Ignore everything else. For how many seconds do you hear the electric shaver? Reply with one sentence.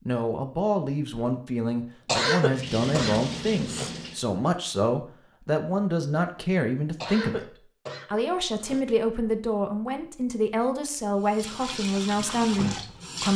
You can't hear the electric shaver here.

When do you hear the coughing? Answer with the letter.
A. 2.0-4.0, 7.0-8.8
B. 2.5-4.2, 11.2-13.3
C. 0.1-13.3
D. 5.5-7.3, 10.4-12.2
A.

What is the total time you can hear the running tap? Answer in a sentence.
The running tap can be heard for 4 seconds in total.